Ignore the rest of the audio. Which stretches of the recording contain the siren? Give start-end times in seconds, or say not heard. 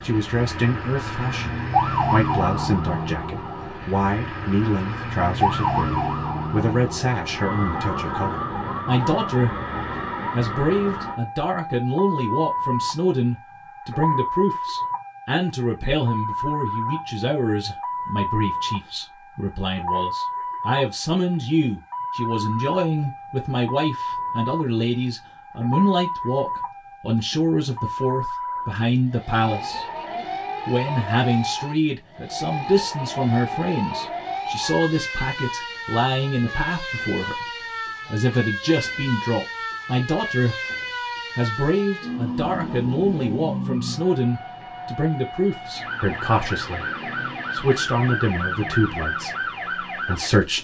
0.0-50.5.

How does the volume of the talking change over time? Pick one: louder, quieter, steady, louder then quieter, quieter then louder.
steady.